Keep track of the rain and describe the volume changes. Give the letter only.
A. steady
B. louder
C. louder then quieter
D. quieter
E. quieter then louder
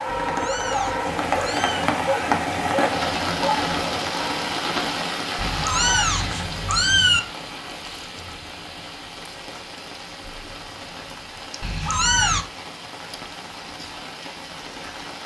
D.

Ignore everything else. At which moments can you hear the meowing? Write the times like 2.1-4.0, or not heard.
0.1-1.9, 5.3-7.2, 11.6-12.4.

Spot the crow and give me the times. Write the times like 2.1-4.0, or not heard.
not heard.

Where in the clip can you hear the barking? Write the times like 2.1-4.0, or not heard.
0.0-4.4.